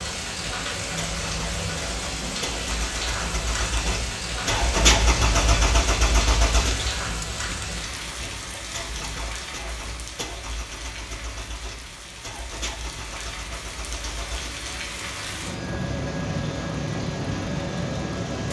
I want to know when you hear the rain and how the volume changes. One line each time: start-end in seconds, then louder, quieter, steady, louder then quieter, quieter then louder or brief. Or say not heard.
0.0-18.4 quieter then louder.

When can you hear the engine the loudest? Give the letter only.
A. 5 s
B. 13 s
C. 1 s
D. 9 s
A.